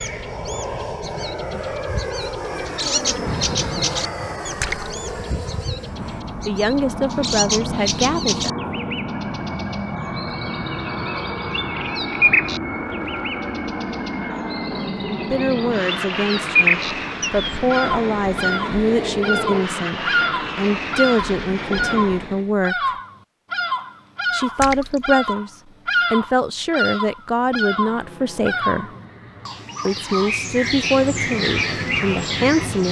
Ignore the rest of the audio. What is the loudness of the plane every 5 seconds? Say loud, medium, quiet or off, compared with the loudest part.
loud, loud, loud, loud, loud, quiet, loud.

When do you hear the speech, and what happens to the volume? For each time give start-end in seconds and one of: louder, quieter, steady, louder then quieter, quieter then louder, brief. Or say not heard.
6.5-8.7 brief
15.1-22.9 steady
24.3-28.9 steady
29.9-32.8 brief.